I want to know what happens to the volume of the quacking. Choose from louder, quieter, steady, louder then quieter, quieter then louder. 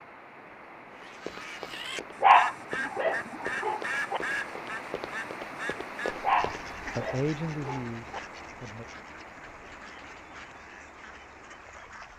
quieter.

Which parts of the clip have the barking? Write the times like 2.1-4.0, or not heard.
2.2-4.2, 6.2-8.2.